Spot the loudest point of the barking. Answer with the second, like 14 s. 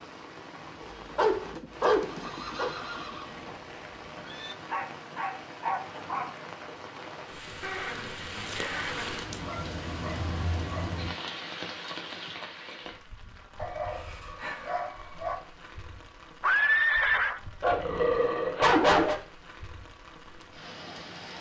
19 s.